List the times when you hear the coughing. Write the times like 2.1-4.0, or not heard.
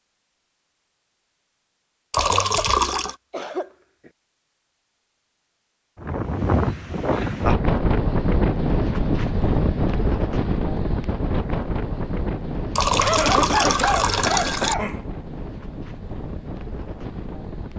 2.1-4.1, 13.0-15.1.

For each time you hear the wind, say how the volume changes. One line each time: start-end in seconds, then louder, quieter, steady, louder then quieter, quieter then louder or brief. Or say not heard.
6.0-17.7 quieter.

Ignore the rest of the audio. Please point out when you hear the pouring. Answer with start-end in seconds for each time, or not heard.
2.1-3.1, 12.8-14.8.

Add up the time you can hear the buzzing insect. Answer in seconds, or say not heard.
not heard.